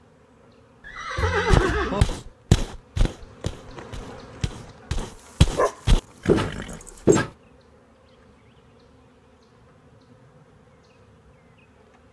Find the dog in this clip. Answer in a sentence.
You can hear the dog from 5.0 to 7.2 s.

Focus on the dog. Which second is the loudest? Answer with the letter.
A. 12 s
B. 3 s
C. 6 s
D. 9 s
C.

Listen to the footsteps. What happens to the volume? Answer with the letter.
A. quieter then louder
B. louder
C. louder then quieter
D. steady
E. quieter
A.